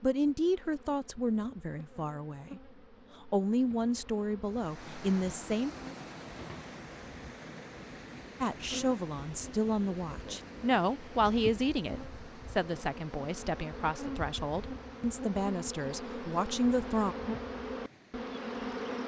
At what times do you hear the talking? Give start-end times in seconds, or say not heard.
0.0-5.7, 8.4-17.1.